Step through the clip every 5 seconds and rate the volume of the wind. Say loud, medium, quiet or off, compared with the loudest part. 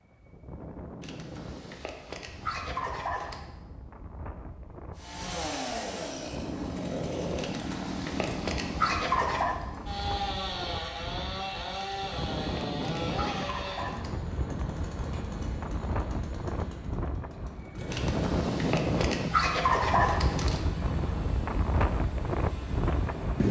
quiet, medium, medium, loud, loud.